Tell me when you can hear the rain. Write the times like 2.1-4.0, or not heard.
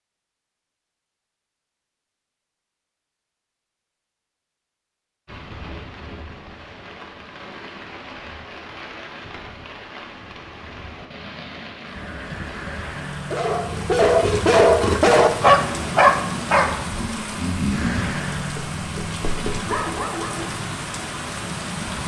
5.2-22.0.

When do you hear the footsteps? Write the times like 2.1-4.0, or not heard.
not heard.